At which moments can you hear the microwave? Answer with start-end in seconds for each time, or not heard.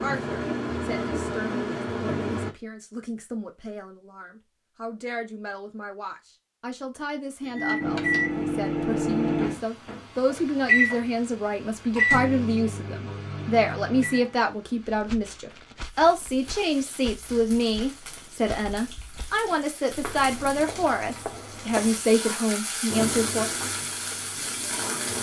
0.0-2.5, 7.5-14.9, 22.9-25.1.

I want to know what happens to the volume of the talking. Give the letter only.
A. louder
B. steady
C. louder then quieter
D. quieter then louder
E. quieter
A.